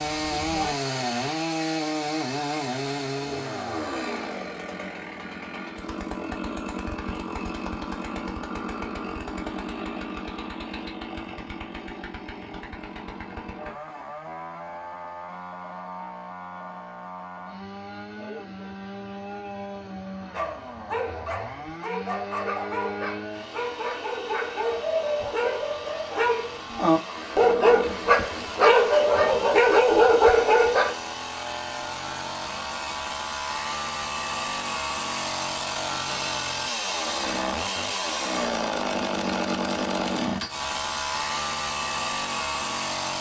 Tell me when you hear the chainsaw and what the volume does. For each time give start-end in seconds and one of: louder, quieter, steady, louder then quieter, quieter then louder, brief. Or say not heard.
0.0-43.1 quieter then louder.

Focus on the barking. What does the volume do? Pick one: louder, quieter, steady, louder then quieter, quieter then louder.
louder.